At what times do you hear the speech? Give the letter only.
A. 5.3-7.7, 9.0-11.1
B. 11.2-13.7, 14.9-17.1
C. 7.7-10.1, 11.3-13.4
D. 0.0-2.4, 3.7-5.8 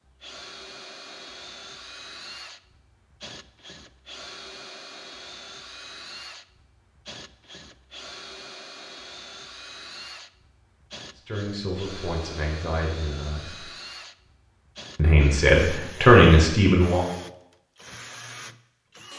B.